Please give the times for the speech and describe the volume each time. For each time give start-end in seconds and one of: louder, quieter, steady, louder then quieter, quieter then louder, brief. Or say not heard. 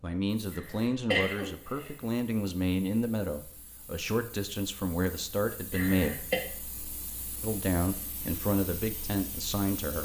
0.0-6.2 steady
7.4-10.0 brief.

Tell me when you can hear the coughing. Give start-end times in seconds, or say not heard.
0.5-1.9, 5.7-6.4.